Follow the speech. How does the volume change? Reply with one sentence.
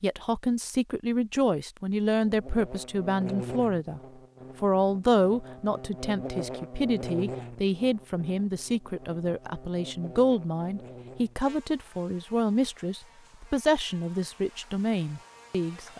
The loudness of the speech stays about the same.